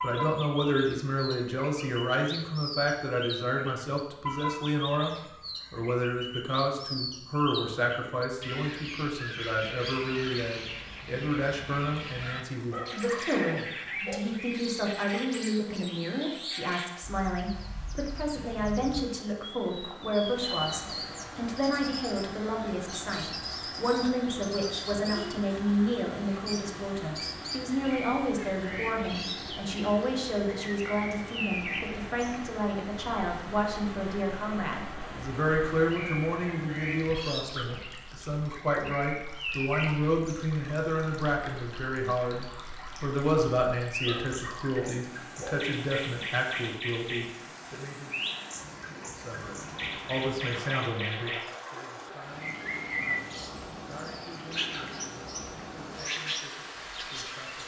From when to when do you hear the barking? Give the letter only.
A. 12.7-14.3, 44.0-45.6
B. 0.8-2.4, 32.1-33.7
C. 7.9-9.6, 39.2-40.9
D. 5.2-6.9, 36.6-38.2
A.